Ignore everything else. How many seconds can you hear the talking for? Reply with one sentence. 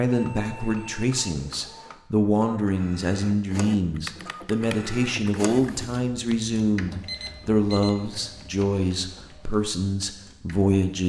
The talking can be heard for 11 seconds in total.